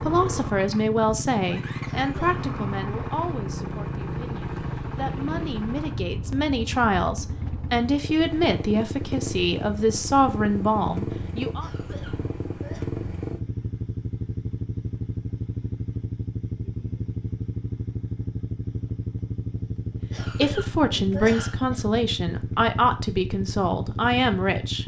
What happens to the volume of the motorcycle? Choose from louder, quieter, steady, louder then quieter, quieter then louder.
steady.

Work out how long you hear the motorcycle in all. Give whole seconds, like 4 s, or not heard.
25 s.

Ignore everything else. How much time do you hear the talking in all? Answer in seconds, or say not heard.
16 s.